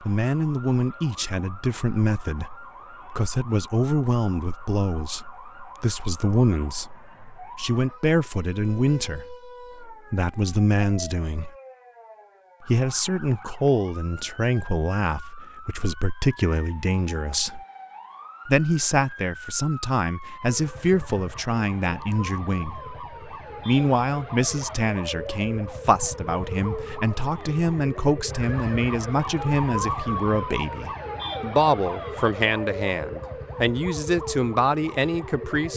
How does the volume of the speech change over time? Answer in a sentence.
The loudness of the speech stays about the same.